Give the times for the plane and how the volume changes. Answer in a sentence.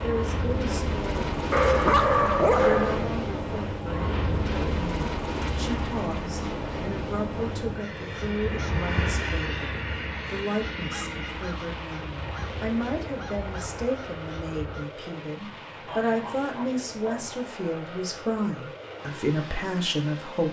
The plane can be heard from 0.0 to 20.4 s, getting quieter.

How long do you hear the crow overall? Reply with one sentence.
The crow can be heard for 7 seconds in total.